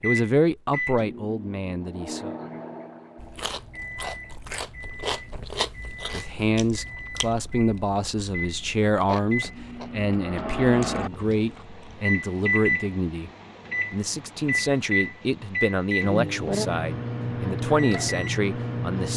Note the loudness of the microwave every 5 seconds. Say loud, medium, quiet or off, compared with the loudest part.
medium, medium, loud, loud.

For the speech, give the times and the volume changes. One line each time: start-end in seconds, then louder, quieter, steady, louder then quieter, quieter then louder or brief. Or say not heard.
0.0-2.4 brief
6.1-13.3 steady
13.9-19.1 steady.